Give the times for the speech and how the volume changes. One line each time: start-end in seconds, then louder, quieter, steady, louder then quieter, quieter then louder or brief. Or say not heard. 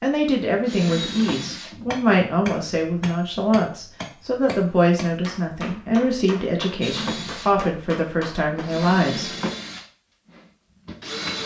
0.0-9.3 steady.